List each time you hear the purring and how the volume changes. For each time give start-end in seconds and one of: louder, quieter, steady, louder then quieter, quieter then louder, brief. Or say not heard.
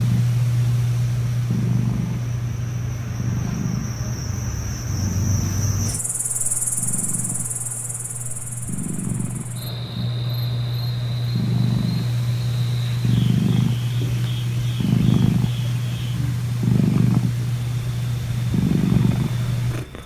0.0-20.0 quieter then louder.